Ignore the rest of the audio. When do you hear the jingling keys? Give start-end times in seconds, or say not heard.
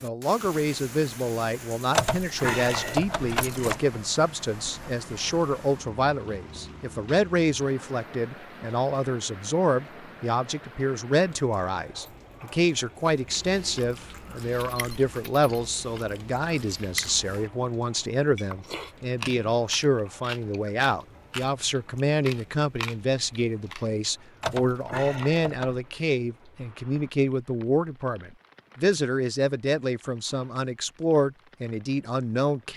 1.9-3.8, 14.5-15.7, 24.4-25.8.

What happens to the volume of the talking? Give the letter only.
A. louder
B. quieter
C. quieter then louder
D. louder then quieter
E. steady
E.